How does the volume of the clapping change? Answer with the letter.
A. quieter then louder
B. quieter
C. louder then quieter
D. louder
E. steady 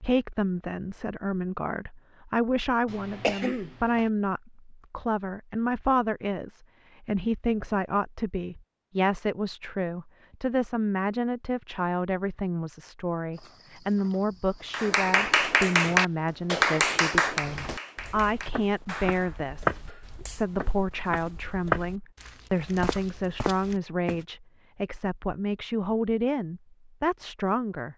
B.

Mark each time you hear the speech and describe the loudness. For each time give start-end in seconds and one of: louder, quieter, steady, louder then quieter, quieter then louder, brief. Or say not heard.
0.0-27.9 steady.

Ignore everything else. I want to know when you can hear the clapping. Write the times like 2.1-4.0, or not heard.
14.7-20.4.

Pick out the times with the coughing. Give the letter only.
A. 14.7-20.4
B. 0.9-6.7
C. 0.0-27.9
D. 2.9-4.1
D.